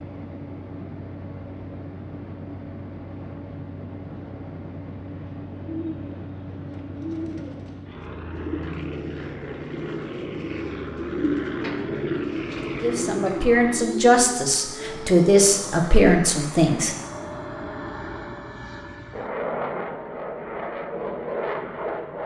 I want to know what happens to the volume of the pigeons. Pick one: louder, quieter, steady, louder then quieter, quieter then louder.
louder.